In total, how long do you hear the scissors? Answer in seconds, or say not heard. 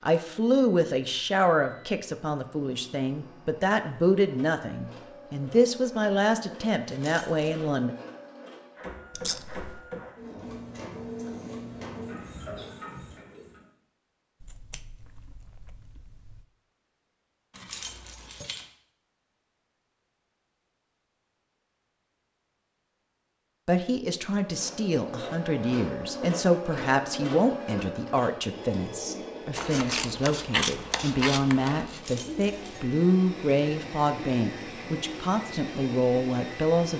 5 s.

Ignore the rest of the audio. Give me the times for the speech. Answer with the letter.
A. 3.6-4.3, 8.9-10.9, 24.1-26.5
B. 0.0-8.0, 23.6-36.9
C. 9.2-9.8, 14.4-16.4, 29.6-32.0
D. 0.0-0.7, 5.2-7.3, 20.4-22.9
B.